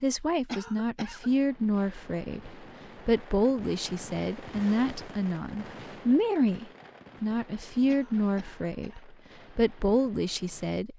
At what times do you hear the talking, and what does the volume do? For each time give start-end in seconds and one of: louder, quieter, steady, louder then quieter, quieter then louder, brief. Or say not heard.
0.0-10.9 steady.